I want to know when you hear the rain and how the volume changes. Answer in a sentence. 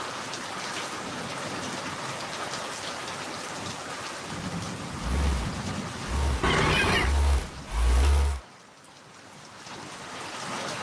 The rain can be heard from 0.0 to 10.7 s, getting quieter.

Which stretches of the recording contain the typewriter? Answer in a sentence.
The typewriter can't be heard in this clip.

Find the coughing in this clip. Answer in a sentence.
You can hear the coughing from 6.4 to 7.2 s.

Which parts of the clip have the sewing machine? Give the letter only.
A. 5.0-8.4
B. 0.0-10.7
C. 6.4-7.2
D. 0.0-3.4
A.